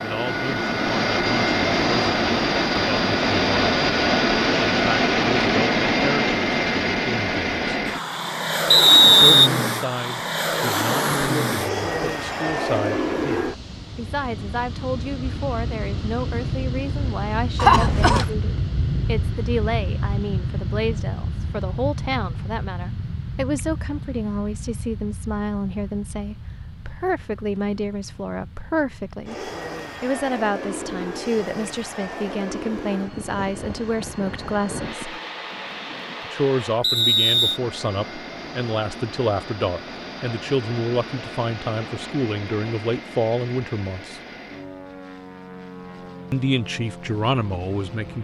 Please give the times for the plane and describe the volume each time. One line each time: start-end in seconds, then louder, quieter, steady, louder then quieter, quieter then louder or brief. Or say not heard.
0.0-48.1 quieter.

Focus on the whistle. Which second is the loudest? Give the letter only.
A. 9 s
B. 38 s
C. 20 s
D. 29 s
A.